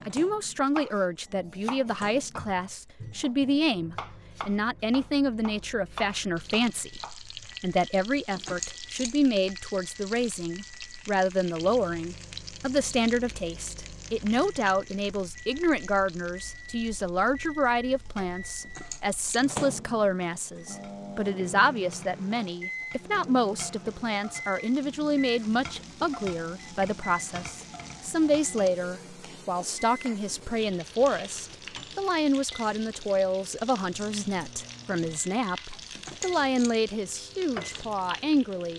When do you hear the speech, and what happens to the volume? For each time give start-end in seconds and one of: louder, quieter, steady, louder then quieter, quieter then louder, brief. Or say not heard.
0.1-38.7 steady.